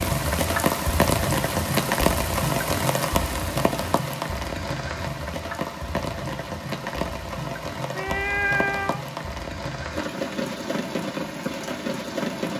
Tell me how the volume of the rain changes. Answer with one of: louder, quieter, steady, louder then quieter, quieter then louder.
quieter.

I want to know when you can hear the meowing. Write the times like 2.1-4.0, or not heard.
8.0-9.1.